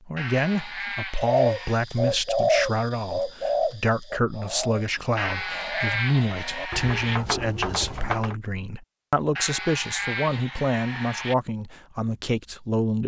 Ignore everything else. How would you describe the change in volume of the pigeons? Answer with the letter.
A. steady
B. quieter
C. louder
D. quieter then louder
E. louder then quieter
D.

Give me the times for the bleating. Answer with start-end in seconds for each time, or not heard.
0.1-1.8, 5.2-7.2, 9.3-11.3.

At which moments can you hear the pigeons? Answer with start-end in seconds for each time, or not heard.
1.1-8.3.